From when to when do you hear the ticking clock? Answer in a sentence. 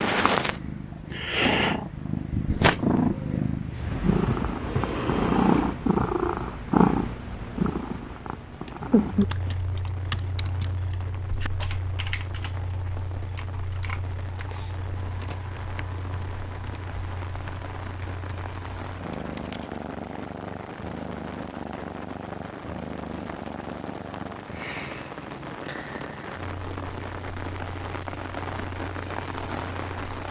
The ticking clock can't be heard in this clip.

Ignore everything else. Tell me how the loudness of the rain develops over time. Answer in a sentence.
The loudness of the rain goes up.